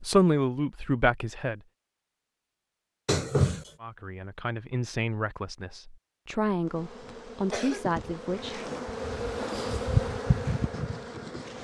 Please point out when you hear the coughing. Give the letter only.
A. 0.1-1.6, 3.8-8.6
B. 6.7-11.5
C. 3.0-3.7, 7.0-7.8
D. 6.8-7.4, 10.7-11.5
C.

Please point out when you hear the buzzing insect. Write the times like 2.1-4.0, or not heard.
6.7-11.5.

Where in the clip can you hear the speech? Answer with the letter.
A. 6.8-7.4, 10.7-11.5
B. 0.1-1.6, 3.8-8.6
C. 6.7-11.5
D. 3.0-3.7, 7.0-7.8
B.